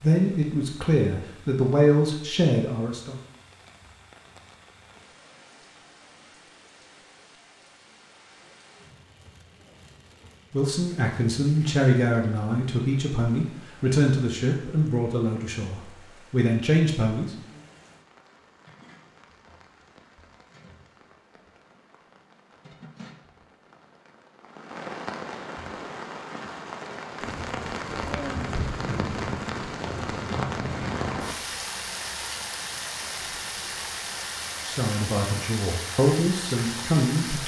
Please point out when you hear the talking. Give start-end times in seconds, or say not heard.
0.0-3.2, 10.5-17.3, 34.6-37.4.